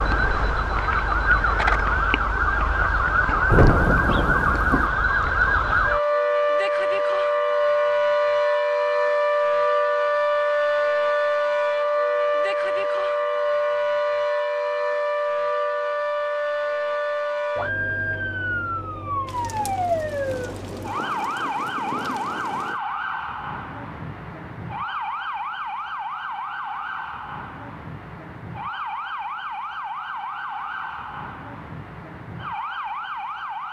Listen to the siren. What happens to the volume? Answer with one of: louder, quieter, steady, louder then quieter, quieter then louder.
quieter.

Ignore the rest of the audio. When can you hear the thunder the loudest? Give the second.
4 s.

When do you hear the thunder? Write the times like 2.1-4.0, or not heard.
3.5-4.9, 19.2-22.8.